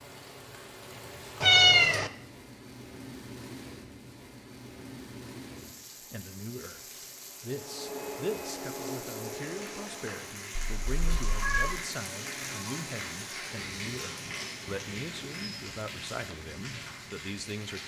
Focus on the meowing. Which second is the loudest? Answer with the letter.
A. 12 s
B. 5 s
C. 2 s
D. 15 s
C.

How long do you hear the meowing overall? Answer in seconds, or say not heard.
2 s.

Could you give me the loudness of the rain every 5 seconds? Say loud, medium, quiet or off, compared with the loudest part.
medium, medium, loud, loud.